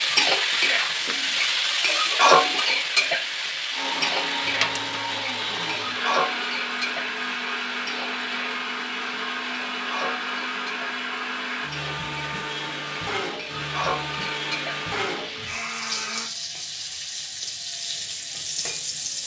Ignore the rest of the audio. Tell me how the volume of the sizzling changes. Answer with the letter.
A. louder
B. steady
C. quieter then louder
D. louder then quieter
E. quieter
E.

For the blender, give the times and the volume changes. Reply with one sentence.
The blender can be heard from 3.7 to 16.3 s, at a steady volume.